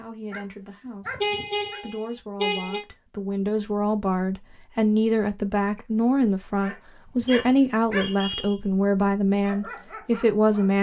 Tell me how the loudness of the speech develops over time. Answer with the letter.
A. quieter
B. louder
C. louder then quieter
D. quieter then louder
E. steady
B.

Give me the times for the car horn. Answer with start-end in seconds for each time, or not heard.
1.2-2.9, 7.2-8.6.